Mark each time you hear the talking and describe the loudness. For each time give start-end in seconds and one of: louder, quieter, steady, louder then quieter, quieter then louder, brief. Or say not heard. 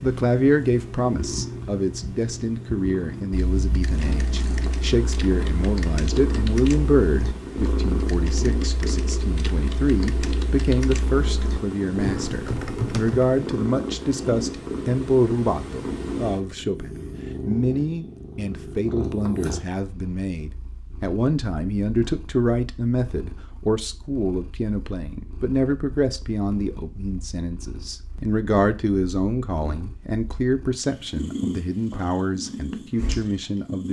0.0-33.8 steady.